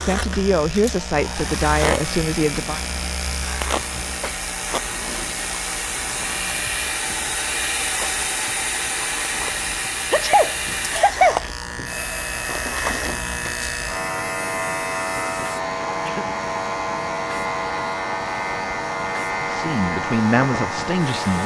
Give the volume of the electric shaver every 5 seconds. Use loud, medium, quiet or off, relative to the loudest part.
loud, medium, loud, loud, loud.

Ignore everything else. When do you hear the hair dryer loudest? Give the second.
8 s.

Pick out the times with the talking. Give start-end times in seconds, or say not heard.
0.0-2.8, 19.4-21.4.